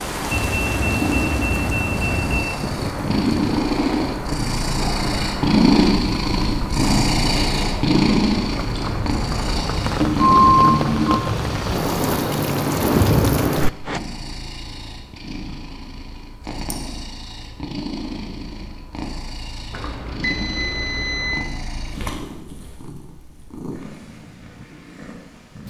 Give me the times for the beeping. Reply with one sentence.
You can hear the beeping from 0.3 to 2.5 s, from 10.0 to 11.2 s and from 19.7 to 21.5 s.